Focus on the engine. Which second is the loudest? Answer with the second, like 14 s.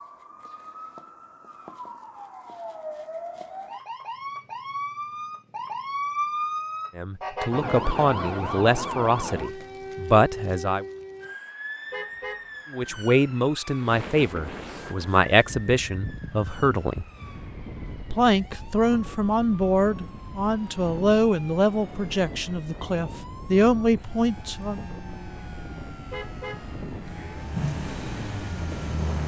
28 s.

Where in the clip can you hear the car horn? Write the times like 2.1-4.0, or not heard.
7.3-8.0, 11.9-13.1, 26.1-27.4.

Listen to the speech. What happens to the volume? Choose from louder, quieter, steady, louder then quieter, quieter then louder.
steady.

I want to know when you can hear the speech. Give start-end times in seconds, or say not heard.
7.0-10.8, 12.7-17.1, 18.1-24.9.